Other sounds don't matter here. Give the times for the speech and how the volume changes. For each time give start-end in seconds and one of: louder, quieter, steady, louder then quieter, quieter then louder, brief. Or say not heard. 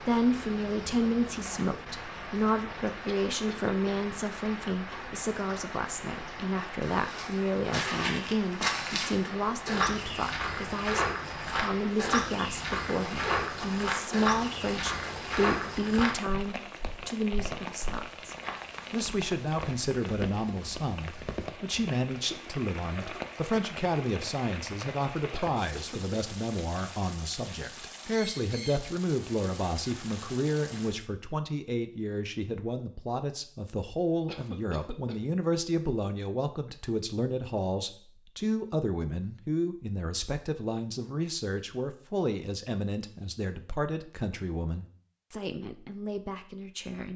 0.0-47.1 steady.